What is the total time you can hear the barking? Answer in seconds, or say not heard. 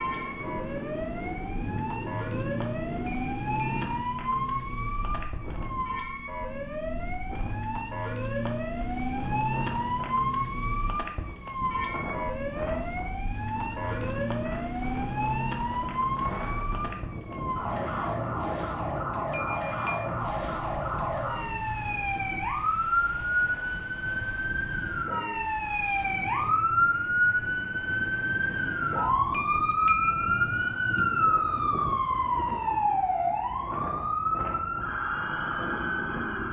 not heard.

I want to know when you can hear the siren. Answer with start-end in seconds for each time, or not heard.
0.0-36.4.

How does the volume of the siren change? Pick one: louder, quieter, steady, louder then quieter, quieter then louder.
louder.